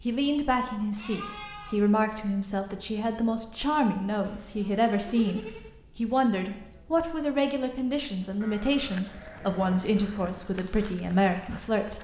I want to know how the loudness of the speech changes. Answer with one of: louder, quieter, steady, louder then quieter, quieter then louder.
steady.